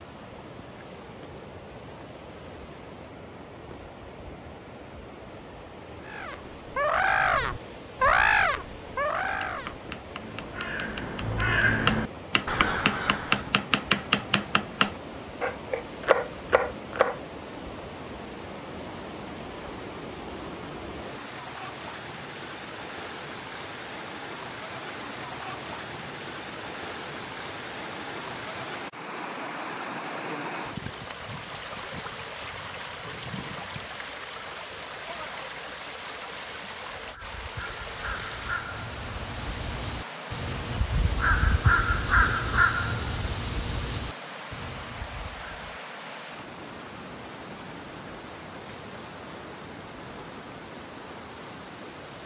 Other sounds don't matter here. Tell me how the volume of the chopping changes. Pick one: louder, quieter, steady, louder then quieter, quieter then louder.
louder.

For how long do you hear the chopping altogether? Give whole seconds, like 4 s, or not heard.
8 s.